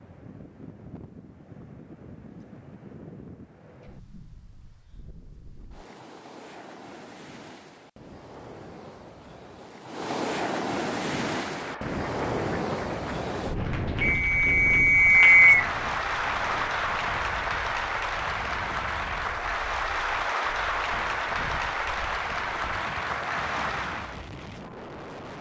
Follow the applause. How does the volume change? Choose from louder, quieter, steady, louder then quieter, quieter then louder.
louder.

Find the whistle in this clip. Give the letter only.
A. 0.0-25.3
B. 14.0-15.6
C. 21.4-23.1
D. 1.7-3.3
B.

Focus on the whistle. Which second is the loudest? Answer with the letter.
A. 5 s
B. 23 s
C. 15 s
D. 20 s
C.